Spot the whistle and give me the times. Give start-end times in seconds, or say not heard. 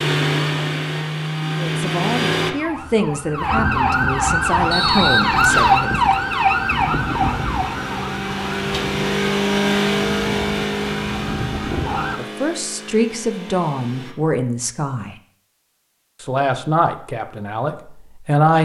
4.7-5.8.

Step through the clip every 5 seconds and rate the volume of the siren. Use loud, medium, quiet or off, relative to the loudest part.
loud, loud, medium, off.